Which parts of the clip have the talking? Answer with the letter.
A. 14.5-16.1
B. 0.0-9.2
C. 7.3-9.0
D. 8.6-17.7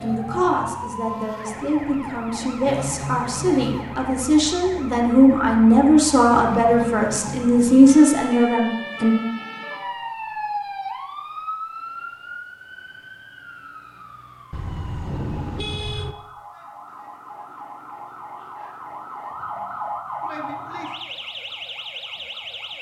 B.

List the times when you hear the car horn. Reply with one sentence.
The car horn can be heard from 14.5 to 16.1 s.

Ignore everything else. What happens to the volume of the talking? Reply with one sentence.
The loudness of the talking goes up.